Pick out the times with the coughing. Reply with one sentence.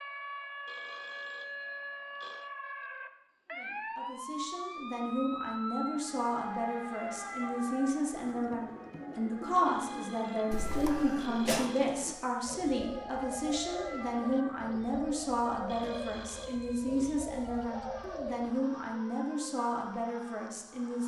You can hear the coughing from 10.5 to 11.8 s.